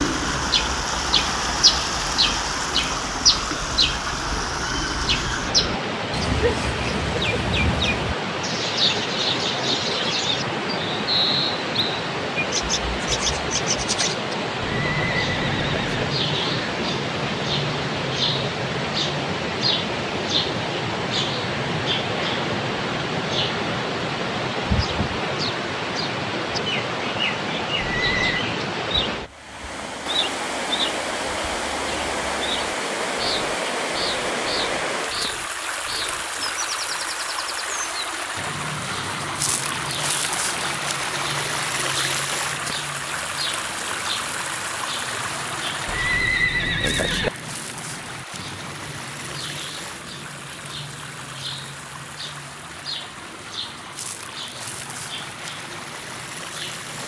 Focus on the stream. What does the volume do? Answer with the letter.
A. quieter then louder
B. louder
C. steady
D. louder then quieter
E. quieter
E.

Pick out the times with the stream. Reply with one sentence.
You can hear the stream from 0.0 to 57.0 s.